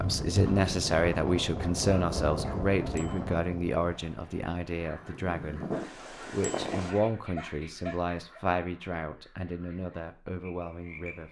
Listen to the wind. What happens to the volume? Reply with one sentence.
The volume of the wind goes down, then up.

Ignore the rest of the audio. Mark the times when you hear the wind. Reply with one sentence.
You can hear the wind from 0.0 to 6.9 s.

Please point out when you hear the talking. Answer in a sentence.
You can hear the talking from 0.0 to 11.2 s.